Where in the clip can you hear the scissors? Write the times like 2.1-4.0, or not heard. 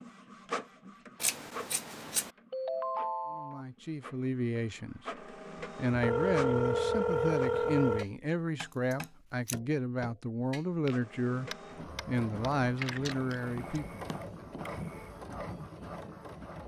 1.2-2.3, 8.7-9.6, 12.8-13.6.